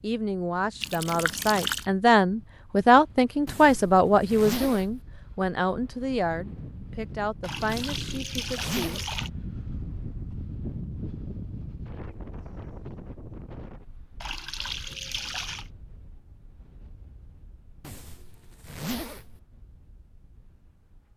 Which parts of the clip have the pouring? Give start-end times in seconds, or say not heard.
0.8-1.9, 7.4-9.3, 14.2-15.7.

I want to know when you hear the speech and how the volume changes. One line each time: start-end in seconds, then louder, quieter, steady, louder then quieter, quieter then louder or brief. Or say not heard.
0.0-9.0 louder then quieter.